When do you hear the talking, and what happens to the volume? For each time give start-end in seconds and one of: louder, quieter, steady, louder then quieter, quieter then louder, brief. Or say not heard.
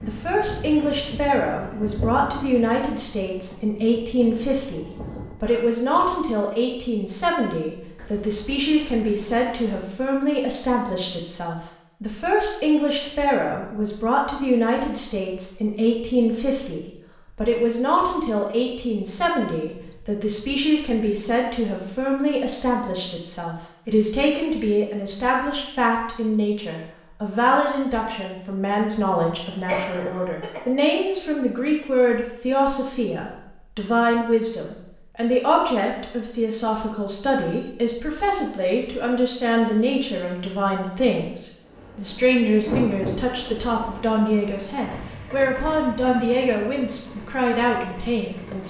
0.0-48.6 steady.